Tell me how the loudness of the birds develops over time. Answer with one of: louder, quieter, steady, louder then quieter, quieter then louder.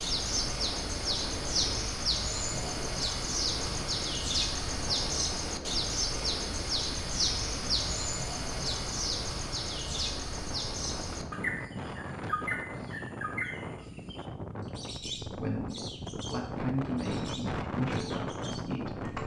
quieter.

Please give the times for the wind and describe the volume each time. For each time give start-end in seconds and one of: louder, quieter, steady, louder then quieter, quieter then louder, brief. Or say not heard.
0.1-19.2 louder.